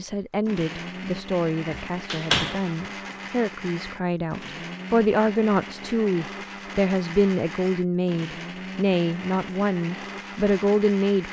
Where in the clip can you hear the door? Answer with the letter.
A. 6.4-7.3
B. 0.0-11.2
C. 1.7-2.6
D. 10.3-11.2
C.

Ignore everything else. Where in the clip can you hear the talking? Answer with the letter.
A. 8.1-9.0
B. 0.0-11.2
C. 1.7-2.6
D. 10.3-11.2
B.